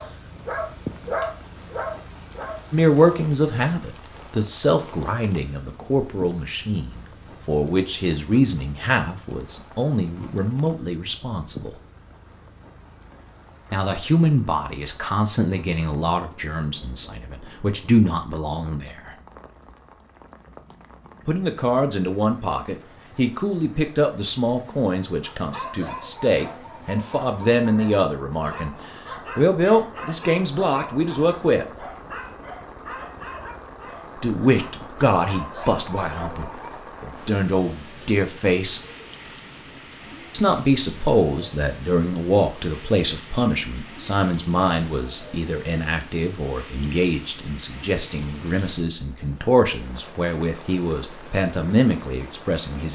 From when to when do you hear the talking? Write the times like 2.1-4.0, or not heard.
2.7-11.7, 13.7-19.1, 21.2-31.6, 34.1-38.8, 40.3-52.9.